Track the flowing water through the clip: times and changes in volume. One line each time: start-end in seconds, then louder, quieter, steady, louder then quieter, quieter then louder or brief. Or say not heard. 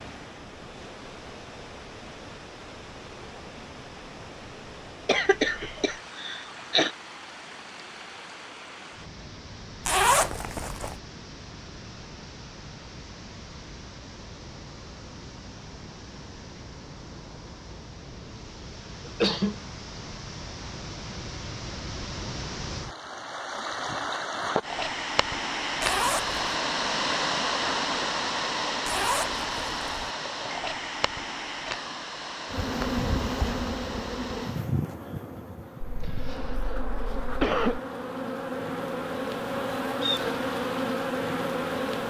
0.0-34.7 louder.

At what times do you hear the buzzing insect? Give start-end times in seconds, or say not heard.
32.5-42.0.